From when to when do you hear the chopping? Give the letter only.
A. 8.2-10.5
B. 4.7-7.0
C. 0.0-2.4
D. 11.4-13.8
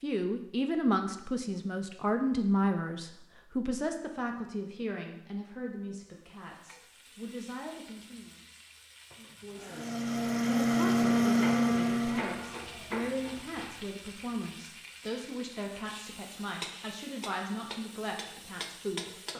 D.